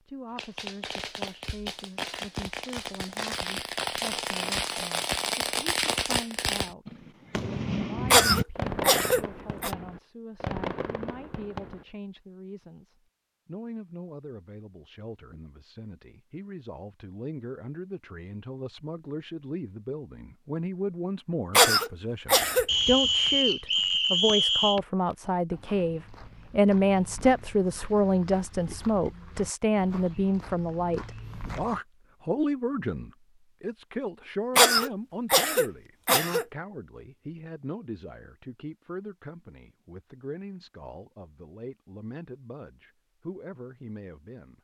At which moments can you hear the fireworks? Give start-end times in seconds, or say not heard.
0.3-11.8.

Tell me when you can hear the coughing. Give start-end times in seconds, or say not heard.
8.1-9.7, 21.5-22.6, 34.5-36.5.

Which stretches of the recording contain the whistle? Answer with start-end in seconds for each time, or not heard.
22.6-24.8.